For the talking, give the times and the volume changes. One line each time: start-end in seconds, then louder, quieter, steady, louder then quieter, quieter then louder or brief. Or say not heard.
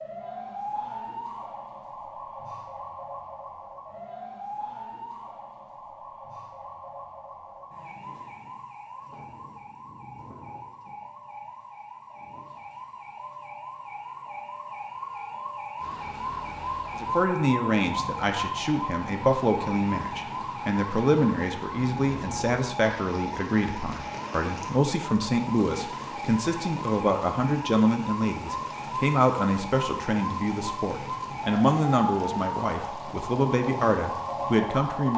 16.9-35.1 steady.